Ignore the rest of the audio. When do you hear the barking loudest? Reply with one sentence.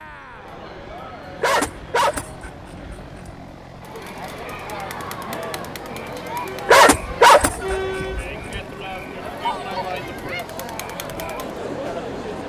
The loudest moment of the barking is at 7 seconds.